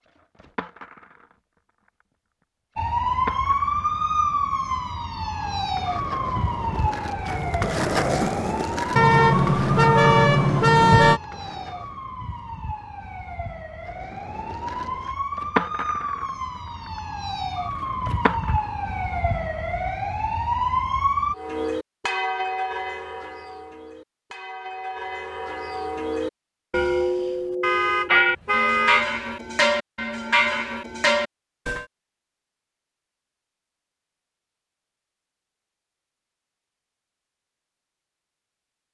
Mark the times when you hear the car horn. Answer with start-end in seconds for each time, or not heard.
8.9-11.2, 27.6-29.1.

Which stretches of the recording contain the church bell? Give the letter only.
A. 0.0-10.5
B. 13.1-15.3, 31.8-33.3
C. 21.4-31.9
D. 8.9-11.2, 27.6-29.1
C.